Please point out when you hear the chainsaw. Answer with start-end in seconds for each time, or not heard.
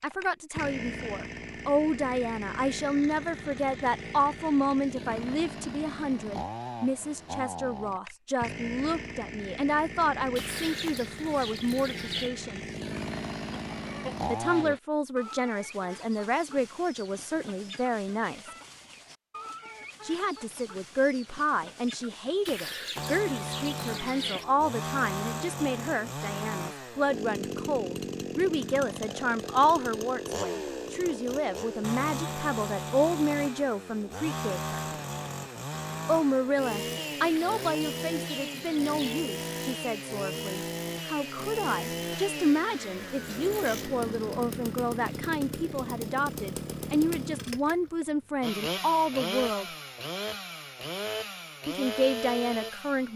0.0-14.7, 22.9-53.1.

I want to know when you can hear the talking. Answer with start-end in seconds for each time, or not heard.
0.0-12.6, 14.2-18.4, 20.0-34.8, 36.0-49.6, 51.6-53.1.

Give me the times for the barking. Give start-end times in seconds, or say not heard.
not heard.